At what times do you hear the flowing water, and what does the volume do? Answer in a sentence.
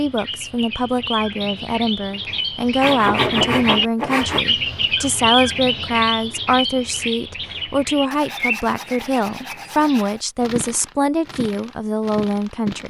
You can't hear the flowing water here.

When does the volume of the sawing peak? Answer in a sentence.
The volume of the sawing peaks at 3 seconds.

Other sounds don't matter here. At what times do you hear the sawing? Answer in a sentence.
The sawing can be heard from 2.8 to 4.5 s and from 8.1 to 10.2 s.